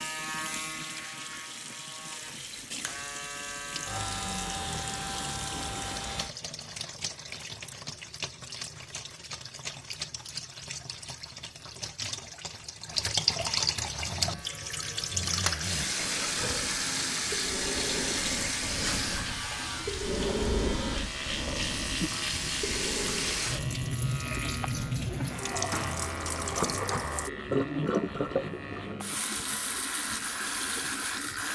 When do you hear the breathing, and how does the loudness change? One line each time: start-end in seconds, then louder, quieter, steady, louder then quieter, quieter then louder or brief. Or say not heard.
13.8-23.6 louder then quieter.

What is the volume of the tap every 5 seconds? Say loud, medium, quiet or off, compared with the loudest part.
medium, medium, loud, loud, loud, loud, loud.